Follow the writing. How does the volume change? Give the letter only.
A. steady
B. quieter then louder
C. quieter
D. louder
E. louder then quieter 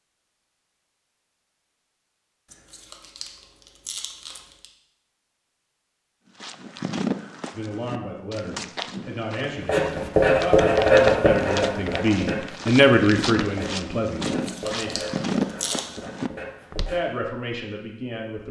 C.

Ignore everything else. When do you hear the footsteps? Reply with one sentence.
The footsteps can be heard from 6.4 to 16.9 s.